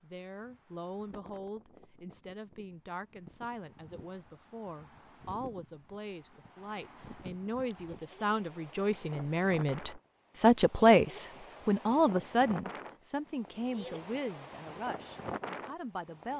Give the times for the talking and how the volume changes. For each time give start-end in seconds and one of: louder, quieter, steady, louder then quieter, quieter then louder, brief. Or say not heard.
0.0-16.3 louder then quieter.